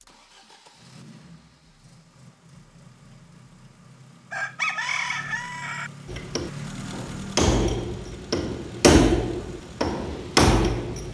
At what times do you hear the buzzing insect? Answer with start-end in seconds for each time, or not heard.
not heard.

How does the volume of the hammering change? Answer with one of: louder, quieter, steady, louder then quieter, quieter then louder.
louder.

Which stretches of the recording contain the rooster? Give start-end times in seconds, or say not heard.
4.3-5.9.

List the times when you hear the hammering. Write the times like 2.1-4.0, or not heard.
6.0-11.0.